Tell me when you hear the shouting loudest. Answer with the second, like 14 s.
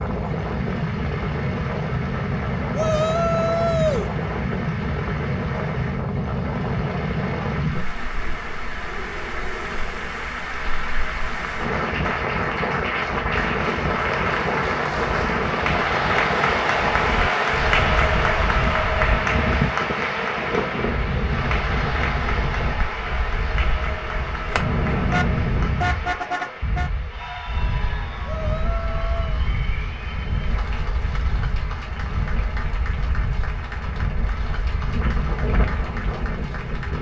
4 s.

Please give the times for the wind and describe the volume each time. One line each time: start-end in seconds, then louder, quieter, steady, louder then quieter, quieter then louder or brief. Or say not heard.
0.0-36.9 quieter.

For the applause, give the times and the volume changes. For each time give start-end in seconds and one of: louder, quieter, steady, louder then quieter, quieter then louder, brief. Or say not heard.
0.0-36.9 louder then quieter.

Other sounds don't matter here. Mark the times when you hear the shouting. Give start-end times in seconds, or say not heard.
2.7-4.1, 28.2-29.4.